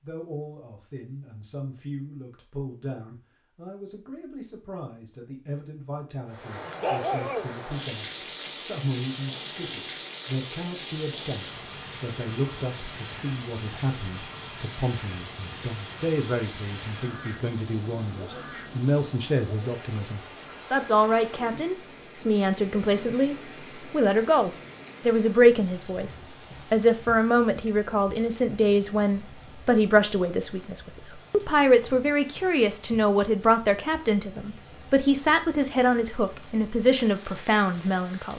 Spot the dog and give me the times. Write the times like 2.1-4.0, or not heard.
6.7-8.0.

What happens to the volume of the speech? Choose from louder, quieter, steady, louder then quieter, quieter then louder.
louder.